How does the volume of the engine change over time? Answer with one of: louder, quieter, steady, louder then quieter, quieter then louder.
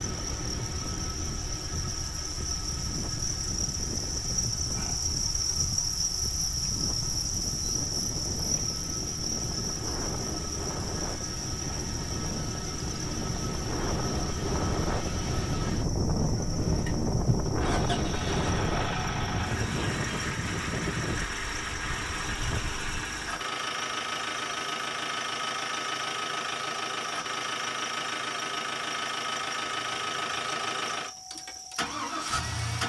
louder.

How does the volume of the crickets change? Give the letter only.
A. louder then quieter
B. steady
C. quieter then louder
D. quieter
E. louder
D.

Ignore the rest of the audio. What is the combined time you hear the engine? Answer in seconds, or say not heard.
33 s.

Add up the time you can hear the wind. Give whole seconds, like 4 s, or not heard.
23 s.